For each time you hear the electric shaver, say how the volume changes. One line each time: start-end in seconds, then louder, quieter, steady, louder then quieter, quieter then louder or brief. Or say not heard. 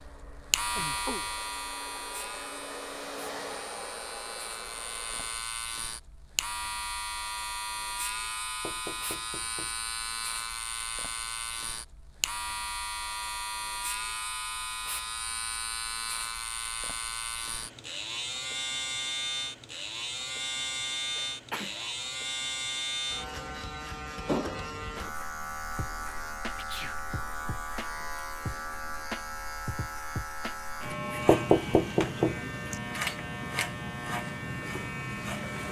0.0-35.6 steady.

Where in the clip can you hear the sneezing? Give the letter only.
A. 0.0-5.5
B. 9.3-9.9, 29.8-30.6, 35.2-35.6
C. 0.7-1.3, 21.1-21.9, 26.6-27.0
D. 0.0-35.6
C.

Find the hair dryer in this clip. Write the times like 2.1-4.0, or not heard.
0.0-5.5.